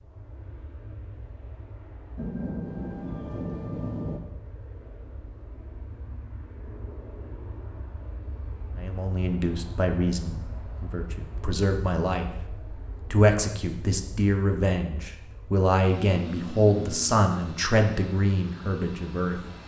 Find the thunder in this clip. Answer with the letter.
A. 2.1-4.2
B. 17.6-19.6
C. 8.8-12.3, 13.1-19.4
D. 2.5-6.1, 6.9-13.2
A.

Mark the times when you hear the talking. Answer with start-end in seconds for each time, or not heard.
8.8-12.3, 13.1-19.4.